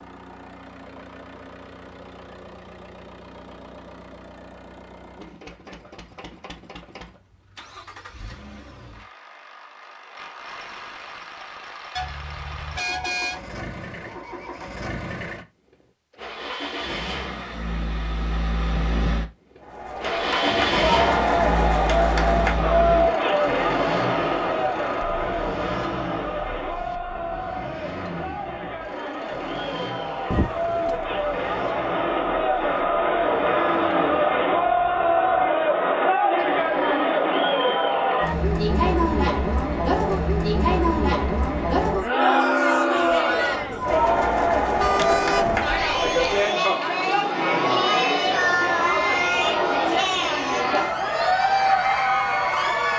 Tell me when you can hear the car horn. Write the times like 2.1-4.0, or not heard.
11.9-13.4, 30.3-31.0, 44.8-46.5.